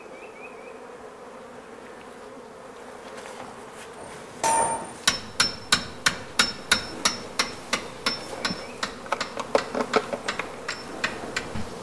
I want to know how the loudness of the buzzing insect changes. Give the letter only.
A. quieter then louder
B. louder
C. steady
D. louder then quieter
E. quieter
B.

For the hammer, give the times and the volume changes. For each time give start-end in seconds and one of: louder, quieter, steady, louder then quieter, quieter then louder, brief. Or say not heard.
4.0-11.7 quieter.